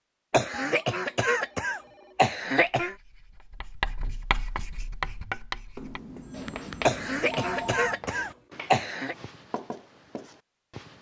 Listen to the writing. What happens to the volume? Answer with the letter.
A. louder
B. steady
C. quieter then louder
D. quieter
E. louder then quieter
D.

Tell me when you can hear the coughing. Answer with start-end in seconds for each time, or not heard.
0.3-3.0, 6.8-9.2.